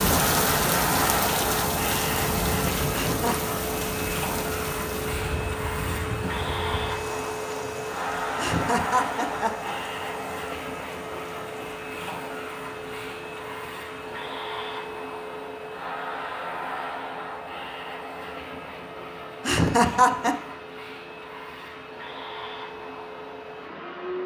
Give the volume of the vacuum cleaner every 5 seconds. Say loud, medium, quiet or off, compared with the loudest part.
loud, loud, medium, medium, medium.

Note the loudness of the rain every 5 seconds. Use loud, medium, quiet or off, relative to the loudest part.
loud, medium, quiet, off, off.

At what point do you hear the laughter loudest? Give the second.
20 s.